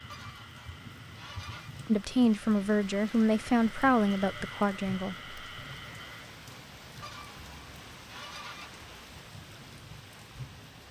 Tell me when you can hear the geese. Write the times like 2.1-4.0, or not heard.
0.1-1.7, 7.0-8.8.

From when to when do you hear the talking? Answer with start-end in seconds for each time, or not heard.
1.9-5.2.